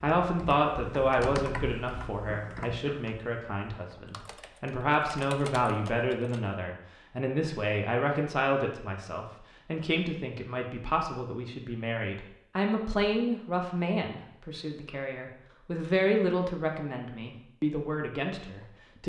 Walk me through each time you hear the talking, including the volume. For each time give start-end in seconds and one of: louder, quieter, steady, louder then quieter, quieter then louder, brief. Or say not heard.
0.0-19.0 steady.